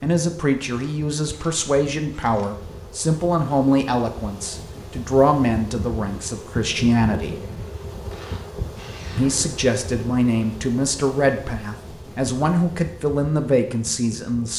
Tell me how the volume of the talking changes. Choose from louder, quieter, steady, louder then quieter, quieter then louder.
steady.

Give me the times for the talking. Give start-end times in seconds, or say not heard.
0.0-7.3, 9.2-14.5.